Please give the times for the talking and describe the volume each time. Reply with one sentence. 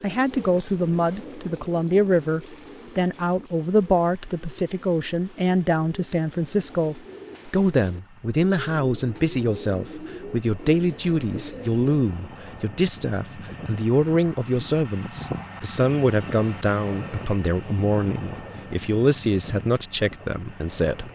You can hear the talking from 0.0 to 21.1 s, at a steady volume.